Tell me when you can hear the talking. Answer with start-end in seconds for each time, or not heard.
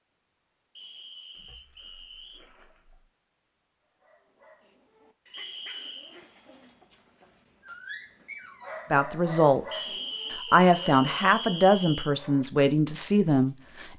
8.9-13.9.